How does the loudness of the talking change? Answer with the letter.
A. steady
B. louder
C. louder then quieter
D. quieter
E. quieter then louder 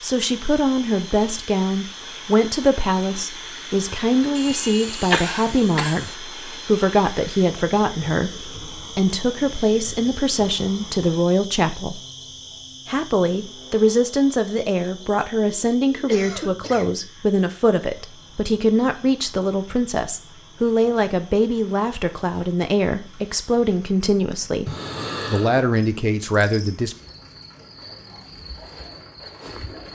A.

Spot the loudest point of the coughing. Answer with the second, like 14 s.
5 s.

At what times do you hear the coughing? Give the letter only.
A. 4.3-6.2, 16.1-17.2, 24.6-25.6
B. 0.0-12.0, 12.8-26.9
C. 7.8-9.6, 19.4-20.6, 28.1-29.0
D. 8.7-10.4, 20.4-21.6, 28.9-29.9
A.